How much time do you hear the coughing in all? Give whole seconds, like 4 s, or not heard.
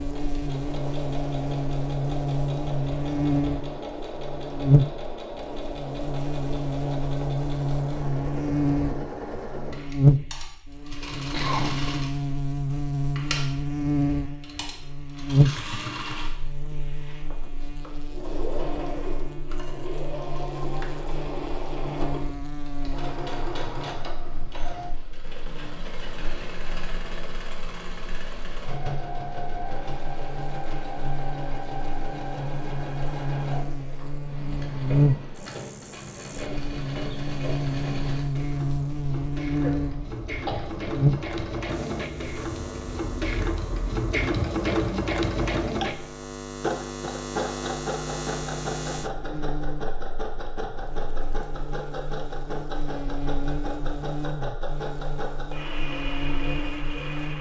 2 s.